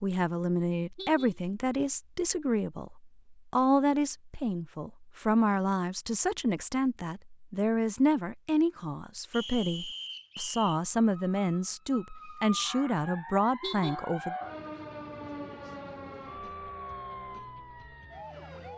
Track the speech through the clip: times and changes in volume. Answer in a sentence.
You can hear the speech from 0.0 to 14.3 s, at a steady volume.